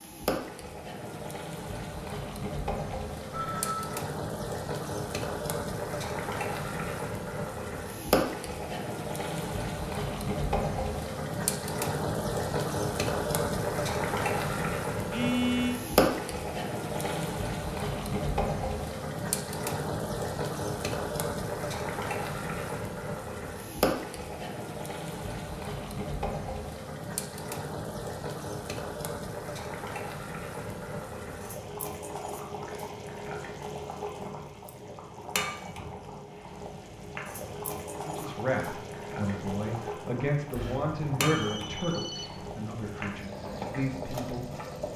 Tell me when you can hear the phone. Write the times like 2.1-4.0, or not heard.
2.9-4.0, 15.1-15.8, 40.5-42.5.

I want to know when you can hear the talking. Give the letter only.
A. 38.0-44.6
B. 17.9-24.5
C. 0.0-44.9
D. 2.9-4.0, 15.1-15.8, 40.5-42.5
A.